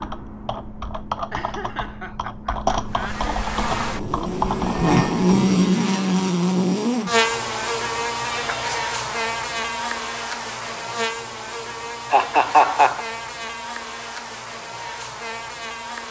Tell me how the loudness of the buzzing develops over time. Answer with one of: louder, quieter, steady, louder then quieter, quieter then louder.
quieter.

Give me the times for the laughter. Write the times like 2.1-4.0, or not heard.
1.3-3.3, 12.1-13.1.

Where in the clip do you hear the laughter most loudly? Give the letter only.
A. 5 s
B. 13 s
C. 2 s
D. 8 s
B.